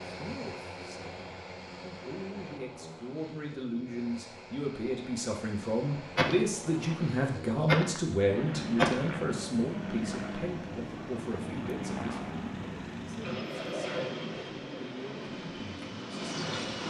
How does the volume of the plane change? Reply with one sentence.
The loudness of the plane goes up.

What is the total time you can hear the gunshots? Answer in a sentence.
The gunshots can be heard for 3 seconds in total.